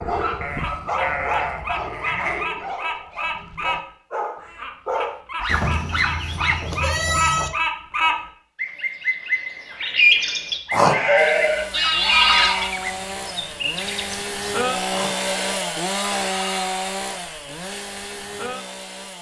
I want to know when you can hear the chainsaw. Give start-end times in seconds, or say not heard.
11.2-19.1.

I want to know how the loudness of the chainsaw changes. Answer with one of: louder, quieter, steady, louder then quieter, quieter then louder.
louder then quieter.